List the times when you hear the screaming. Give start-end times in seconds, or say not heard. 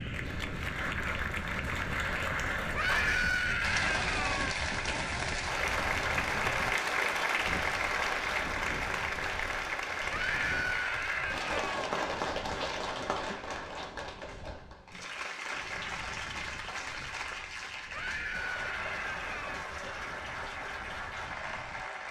2.8-4.5, 10.1-11.8, 17.9-19.7.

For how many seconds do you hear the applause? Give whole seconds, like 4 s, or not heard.
22 s.